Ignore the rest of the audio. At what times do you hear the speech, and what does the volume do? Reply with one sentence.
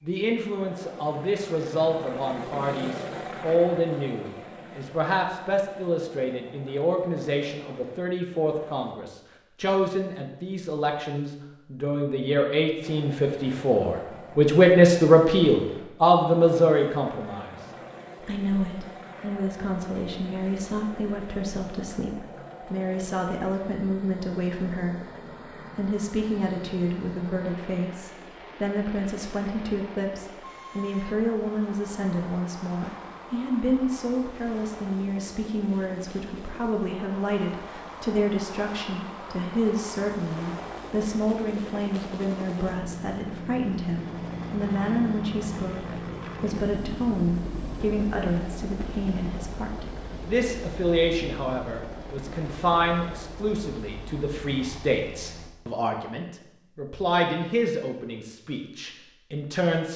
You can hear the speech from 0.0 to 17.6 s, getting louder; from 18.2 to 25.0 s, at a steady volume; and from 25.8 to 59.9 s, at a steady volume.